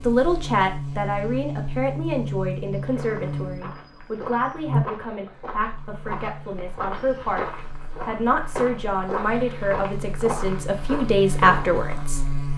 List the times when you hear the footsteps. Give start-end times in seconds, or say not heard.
2.7-12.1.